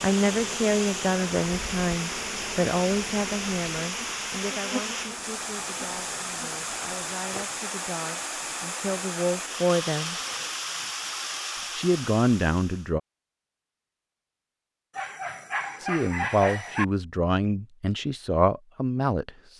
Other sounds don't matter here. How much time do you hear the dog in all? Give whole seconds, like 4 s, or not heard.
2 s.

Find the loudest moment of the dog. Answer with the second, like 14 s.
16 s.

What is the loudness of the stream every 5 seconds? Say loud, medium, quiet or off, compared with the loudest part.
loud, loud, loud, off.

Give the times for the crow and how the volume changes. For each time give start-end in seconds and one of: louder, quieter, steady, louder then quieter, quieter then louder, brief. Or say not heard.
not heard.